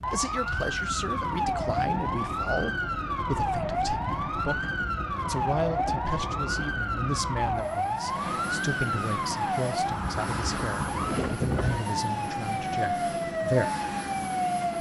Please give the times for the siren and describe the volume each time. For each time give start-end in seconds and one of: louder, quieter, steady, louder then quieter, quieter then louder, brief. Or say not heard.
0.0-14.7 steady.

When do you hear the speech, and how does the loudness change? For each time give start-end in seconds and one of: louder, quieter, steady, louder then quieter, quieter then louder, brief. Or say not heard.
0.1-13.7 steady.